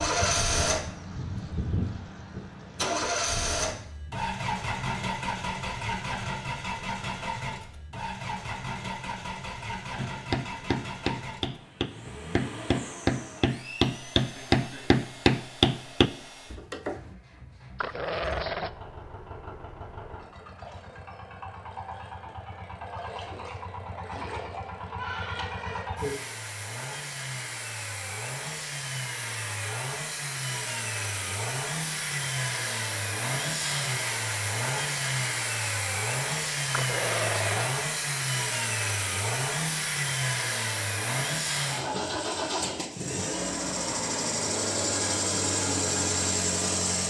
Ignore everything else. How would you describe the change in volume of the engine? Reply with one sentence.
The loudness of the engine goes down, then up.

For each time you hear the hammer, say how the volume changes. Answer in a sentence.
You can hear the hammer from 9.9 to 17.0 s, getting louder.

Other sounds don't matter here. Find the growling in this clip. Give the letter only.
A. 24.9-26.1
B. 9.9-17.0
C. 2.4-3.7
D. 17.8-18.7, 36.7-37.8
D.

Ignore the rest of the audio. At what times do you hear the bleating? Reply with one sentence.
The bleating can be heard from 24.9 to 26.1 s.